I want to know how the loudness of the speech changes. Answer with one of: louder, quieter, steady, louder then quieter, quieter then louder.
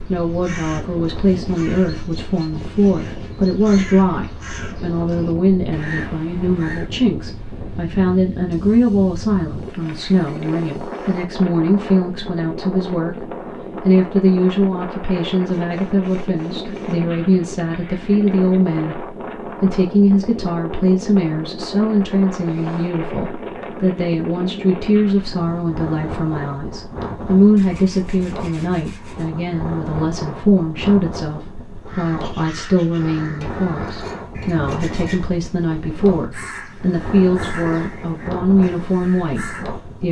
steady.